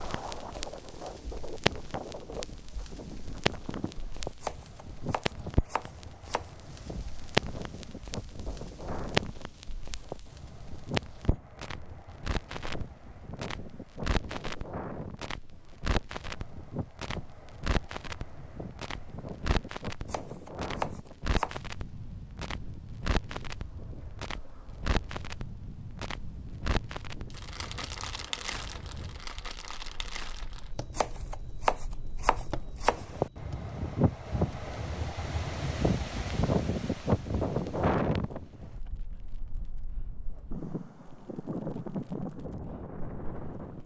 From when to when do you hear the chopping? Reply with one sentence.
You can hear the chopping from 4.4 to 6.5 s, from 20.1 to 21.6 s and from 30.9 to 33.0 s.